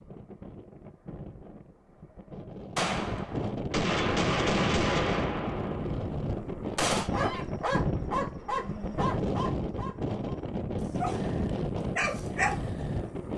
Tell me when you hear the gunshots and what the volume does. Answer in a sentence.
You can hear the gunshots from 2.8 to 7.1 s, getting louder then quieter.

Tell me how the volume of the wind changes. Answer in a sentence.
The volume of the wind goes up.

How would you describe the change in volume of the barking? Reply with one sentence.
The volume of the barking goes down, then up.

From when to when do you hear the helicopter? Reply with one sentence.
You can't hear the helicopter here.